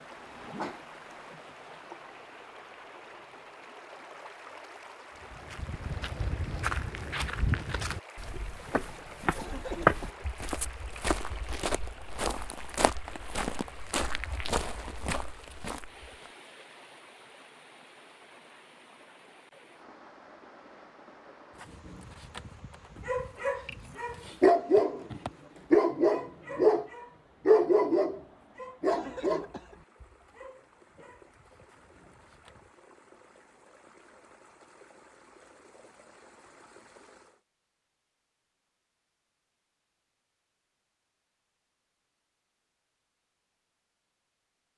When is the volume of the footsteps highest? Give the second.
10 s.